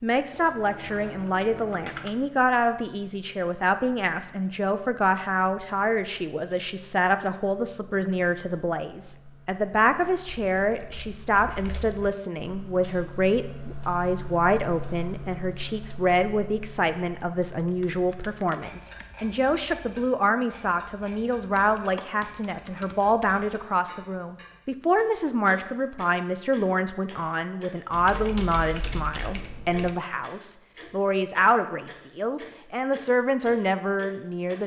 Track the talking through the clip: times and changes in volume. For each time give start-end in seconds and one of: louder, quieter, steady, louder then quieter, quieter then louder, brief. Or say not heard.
0.0-34.6 steady.